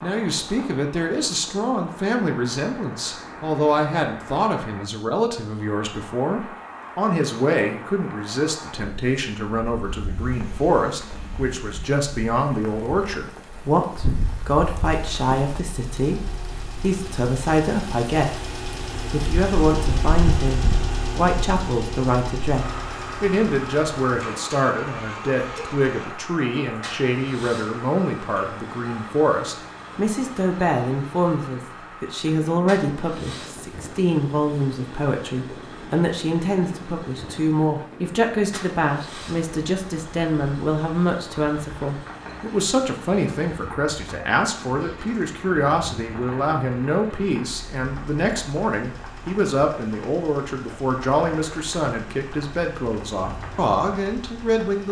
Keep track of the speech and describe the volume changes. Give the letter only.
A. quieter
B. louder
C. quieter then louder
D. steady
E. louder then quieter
D.